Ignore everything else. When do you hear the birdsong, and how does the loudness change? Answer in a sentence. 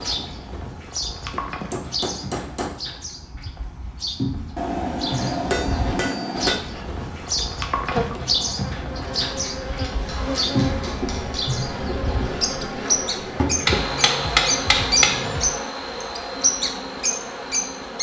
You can hear the birdsong from 0.0 to 17.9 s, getting louder.